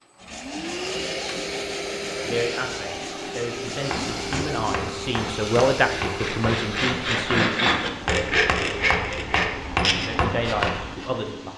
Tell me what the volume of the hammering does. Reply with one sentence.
The loudness of the hammering goes up.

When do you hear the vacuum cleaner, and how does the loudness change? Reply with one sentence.
You can hear the vacuum cleaner from 0.0 to 11.5 s, getting quieter.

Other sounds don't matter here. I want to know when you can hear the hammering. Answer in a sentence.
You can hear the hammering from 3.9 to 10.9 s.